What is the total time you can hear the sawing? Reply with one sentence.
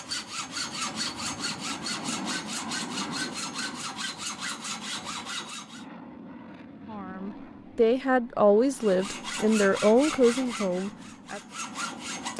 The sawing can be heard for 9 seconds in total.